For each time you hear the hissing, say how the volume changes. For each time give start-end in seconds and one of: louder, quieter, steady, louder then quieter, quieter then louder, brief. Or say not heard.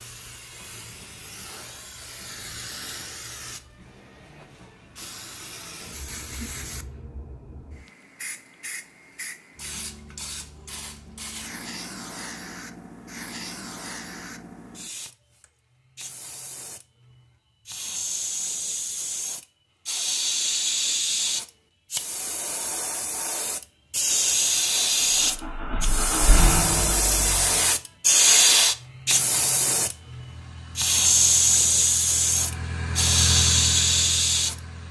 0.0-34.6 louder.